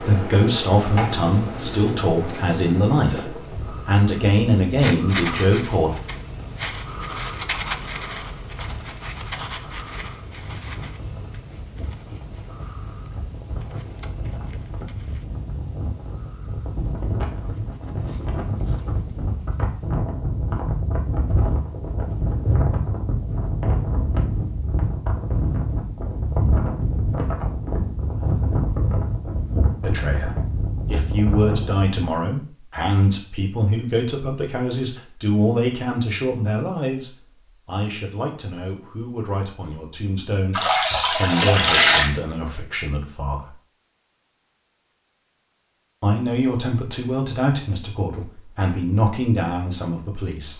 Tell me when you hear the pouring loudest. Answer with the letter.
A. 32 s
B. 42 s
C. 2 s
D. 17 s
B.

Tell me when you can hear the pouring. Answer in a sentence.
You can hear the pouring from 0.8 to 1.8 s and from 40.5 to 42.1 s.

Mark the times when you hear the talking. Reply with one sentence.
The talking can be heard from 0.0 to 5.9 s, from 29.8 to 43.5 s and from 46.0 to 50.5 s.